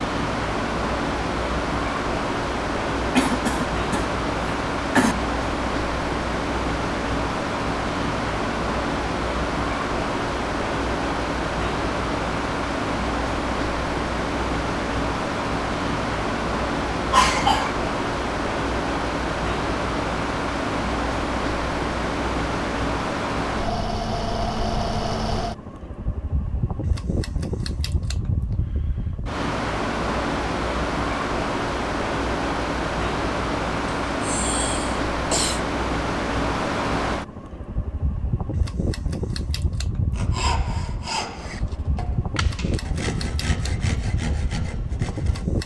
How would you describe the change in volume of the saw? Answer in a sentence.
The loudness of the saw goes down, then up.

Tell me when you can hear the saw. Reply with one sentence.
You can hear the saw from 40.1 to 45.5 s.